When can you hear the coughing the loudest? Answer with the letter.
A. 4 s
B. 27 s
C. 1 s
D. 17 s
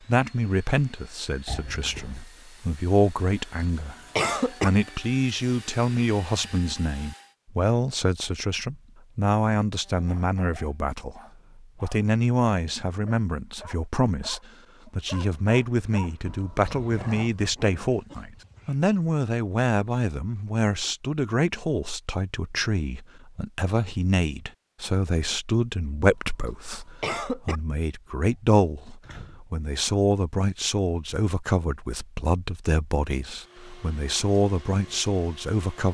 A.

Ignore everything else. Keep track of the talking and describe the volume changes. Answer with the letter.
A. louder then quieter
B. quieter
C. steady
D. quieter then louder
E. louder
C.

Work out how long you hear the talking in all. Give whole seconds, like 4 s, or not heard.
36 s.